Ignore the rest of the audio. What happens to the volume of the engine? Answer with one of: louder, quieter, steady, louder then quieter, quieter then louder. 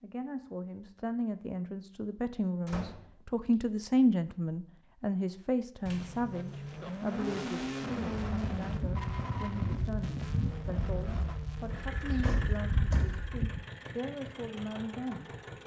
quieter.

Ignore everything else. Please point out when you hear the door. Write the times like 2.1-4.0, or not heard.
2.6-3.1, 5.8-7.2, 11.9-13.2.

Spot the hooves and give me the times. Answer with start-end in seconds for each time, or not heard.
8.2-13.7.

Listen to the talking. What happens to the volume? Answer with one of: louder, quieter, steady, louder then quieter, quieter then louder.
louder then quieter.